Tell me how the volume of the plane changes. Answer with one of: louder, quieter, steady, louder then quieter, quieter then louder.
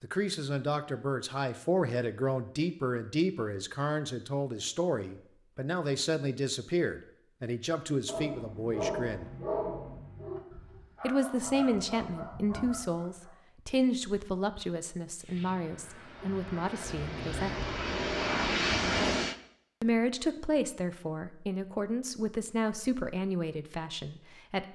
louder.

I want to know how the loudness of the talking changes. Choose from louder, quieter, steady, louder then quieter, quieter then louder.
steady.